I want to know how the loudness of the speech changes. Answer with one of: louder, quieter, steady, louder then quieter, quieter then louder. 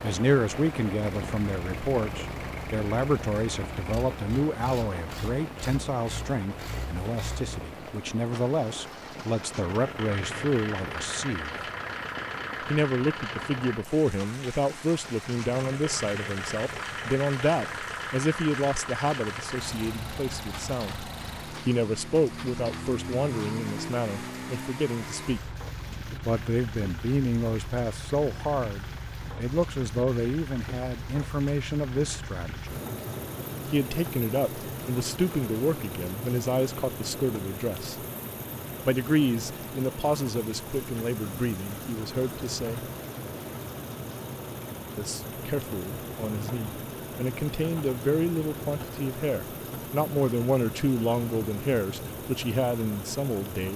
steady.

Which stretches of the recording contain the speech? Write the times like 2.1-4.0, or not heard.
0.0-11.6, 12.6-25.5, 26.2-32.8, 33.6-38.0, 38.9-42.9, 45.0-53.7.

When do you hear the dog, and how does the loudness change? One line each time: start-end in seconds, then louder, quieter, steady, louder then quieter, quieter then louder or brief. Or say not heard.
not heard.